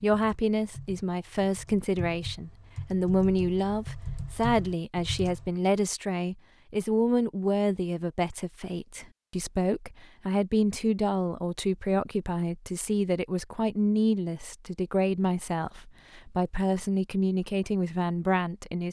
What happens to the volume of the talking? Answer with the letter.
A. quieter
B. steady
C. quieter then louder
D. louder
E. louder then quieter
B.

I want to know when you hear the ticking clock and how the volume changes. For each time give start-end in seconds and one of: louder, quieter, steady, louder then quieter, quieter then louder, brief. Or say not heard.
not heard.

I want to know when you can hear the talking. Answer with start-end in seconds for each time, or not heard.
0.0-18.8.